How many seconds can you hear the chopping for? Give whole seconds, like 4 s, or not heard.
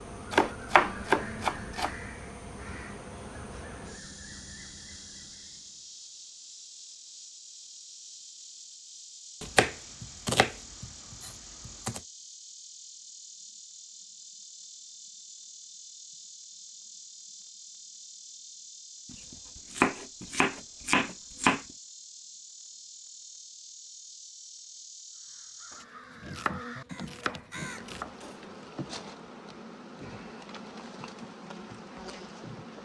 9 s.